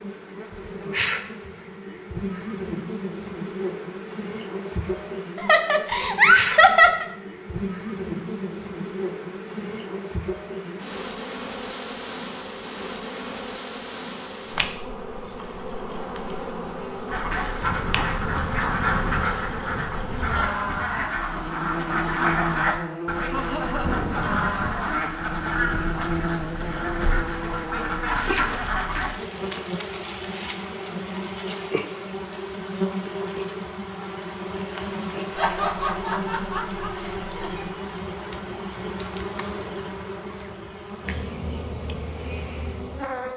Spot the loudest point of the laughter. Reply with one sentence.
The volume of the laughter peaks at 7 seconds.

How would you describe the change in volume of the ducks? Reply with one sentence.
The volume of the ducks stays about the same.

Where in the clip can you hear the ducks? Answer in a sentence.
You can hear the ducks from 17.1 to 29.1 s.